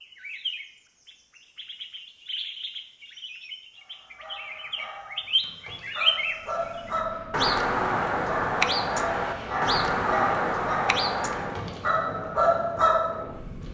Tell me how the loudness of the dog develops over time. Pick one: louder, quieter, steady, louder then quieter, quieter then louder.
louder.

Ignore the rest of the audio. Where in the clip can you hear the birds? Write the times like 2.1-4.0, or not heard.
0.0-11.6.